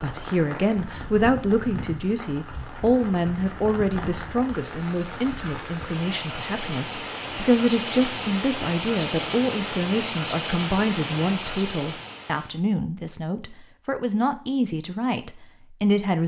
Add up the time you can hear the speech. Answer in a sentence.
You can hear the speech for 16 seconds altogether.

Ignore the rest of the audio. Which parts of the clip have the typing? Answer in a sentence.
The typing can't be heard in this clip.